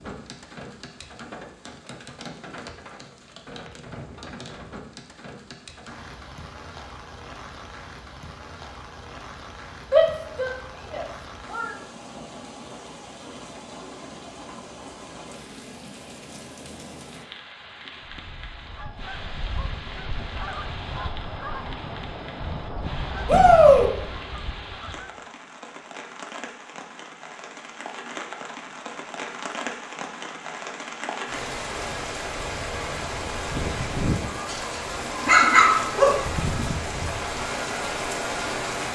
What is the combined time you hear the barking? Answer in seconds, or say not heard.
2 s.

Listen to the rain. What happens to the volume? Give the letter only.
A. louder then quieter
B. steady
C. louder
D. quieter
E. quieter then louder
C.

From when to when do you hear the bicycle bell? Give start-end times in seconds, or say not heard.
not heard.